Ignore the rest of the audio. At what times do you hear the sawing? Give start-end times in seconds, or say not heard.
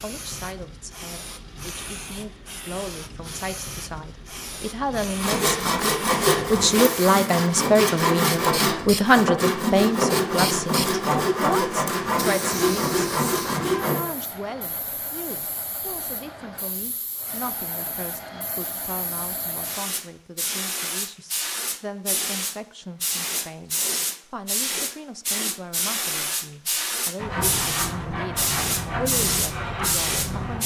5.2-14.0, 27.1-30.6.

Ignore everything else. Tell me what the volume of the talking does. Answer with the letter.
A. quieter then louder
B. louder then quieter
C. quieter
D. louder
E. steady
B.